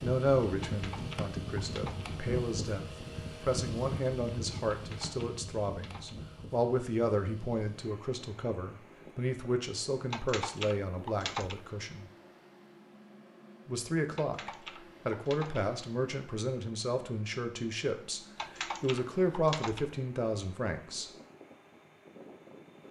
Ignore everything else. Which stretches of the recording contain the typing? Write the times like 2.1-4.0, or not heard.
0.6-2.1, 4.7-6.2, 10.1-11.7, 14.2-15.7, 18.4-19.9.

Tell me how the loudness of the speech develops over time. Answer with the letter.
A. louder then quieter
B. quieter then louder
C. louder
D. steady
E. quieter
D.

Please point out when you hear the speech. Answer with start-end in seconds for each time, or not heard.
0.0-12.1, 13.7-21.1.